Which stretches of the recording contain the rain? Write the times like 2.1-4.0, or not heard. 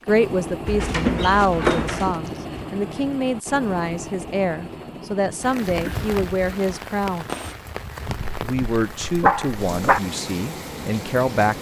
5.4-11.5.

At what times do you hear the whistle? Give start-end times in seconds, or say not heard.
not heard.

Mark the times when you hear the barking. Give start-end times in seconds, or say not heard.
0.7-2.2, 8.1-10.0.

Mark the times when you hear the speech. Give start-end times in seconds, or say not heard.
0.1-7.2, 8.4-11.5.